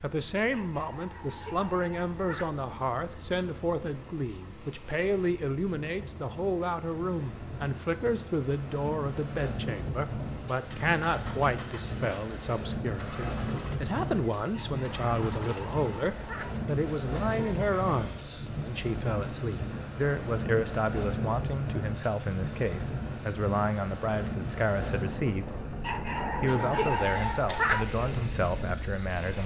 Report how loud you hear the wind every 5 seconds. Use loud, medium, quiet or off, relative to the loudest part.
quiet, medium, loud, loud, loud, loud.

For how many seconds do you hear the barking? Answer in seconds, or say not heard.
6 s.